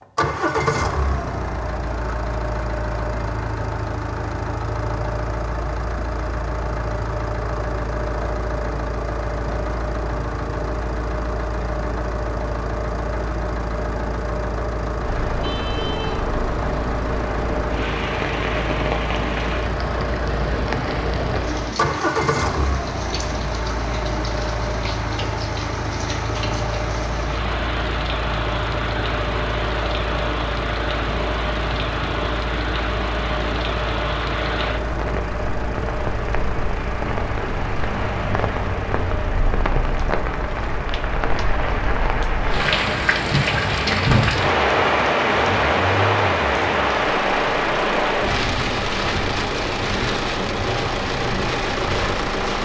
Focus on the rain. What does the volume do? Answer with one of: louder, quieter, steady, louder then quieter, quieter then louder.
louder.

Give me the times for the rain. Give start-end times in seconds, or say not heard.
15.0-52.6.